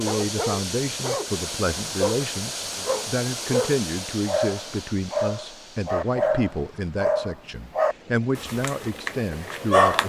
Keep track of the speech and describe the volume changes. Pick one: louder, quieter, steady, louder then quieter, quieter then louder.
steady.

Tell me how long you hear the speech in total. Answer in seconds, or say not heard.
10 s.